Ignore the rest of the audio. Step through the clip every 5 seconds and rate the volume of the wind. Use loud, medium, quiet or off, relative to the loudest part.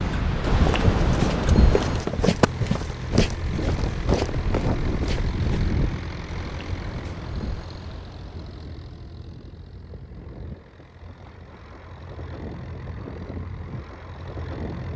loud, medium, off.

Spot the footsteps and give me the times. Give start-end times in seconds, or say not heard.
0.5-5.8.